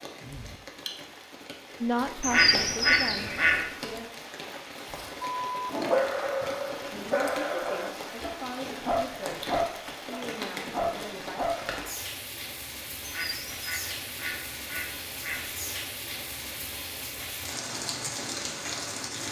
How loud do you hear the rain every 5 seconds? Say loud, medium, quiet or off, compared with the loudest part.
medium, loud, loud, loud.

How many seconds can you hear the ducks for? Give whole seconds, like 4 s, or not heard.
4 s.